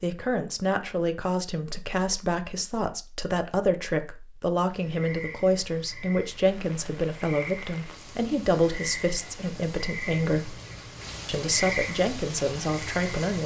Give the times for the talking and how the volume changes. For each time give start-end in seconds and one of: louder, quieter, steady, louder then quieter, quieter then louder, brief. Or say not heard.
0.0-10.6 steady
11.2-13.4 brief.